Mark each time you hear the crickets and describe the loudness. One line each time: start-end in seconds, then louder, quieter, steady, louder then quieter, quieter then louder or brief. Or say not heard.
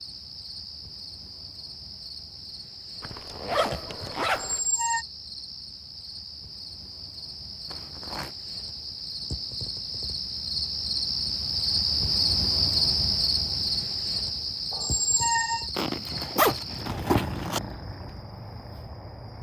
0.0-19.3 louder then quieter.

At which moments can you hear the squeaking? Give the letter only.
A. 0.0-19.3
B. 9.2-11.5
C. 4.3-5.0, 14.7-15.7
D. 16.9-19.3
C.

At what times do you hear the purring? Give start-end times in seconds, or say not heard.
16.9-19.3.